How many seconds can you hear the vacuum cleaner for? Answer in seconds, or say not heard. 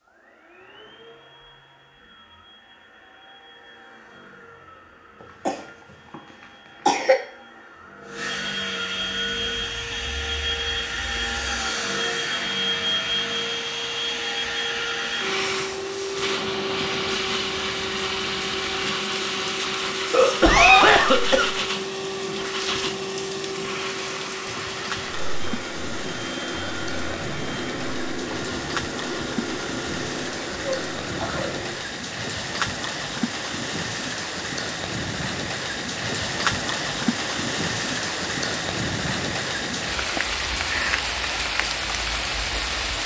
32 s.